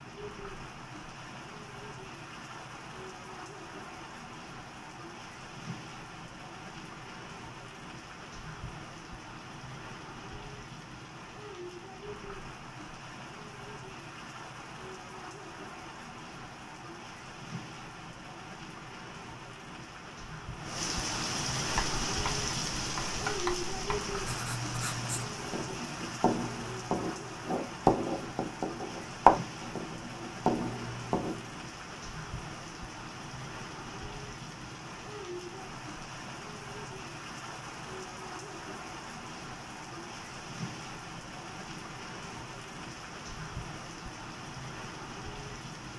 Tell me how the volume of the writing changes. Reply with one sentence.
The volume of the writing goes up.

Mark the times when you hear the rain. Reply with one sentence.
You can hear the rain from 0.0 to 45.9 s.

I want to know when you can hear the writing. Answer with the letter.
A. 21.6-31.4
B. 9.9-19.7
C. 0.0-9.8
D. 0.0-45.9
A.